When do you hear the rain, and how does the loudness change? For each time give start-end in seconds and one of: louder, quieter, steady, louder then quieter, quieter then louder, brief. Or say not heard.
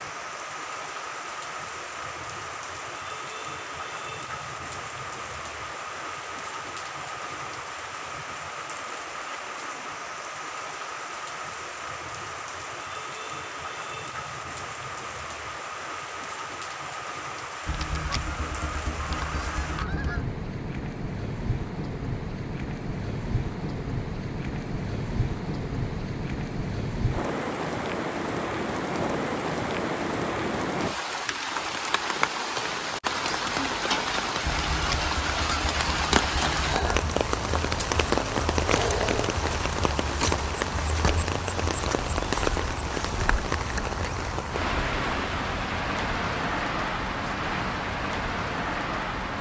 0.0-49.3 louder.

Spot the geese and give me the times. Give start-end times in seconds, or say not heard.
17.6-20.2, 34.4-37.2.